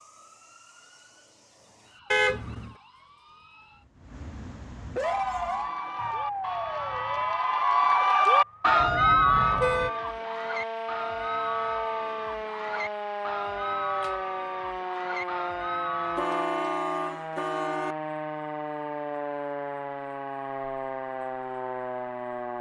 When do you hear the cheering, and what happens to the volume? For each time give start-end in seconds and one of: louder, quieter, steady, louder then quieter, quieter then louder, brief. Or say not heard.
5.0-16.4 louder then quieter.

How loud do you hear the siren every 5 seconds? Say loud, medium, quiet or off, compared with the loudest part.
quiet, loud, loud, loud, loud.